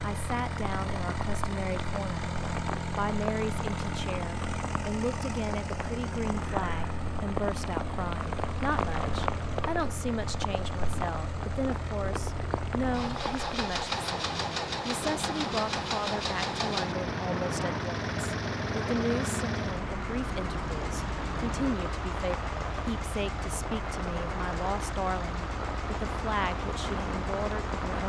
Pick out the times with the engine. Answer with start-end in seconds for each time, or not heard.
0.0-28.0.